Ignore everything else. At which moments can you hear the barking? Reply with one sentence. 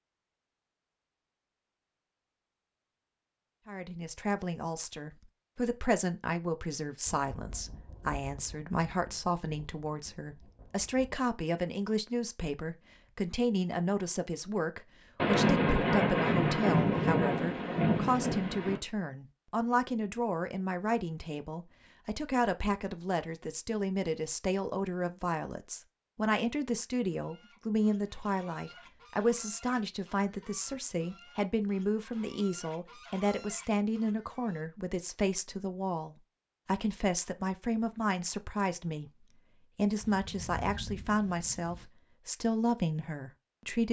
You can't hear the barking here.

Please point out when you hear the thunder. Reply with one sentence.
The thunder can be heard from 7.0 to 11.2 s, from 15.2 to 18.8 s and from 40.0 to 41.9 s.